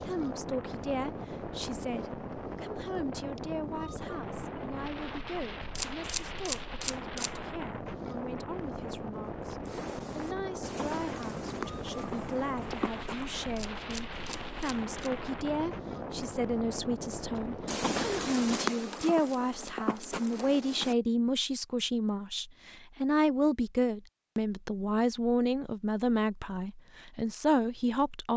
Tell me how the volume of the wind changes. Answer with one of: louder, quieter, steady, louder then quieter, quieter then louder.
steady.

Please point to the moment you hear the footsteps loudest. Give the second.
19 s.